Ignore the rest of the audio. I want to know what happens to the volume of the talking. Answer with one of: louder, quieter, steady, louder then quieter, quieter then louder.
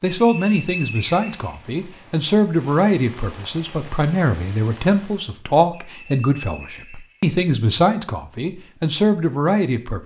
steady.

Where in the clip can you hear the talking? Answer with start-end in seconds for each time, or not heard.
0.0-10.0.